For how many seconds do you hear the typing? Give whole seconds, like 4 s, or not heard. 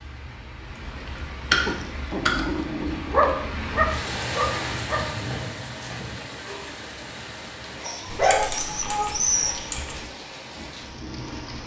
4 s.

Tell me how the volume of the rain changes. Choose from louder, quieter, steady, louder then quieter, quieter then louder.
louder then quieter.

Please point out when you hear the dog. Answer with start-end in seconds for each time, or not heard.
1.6-5.3, 7.8-9.8.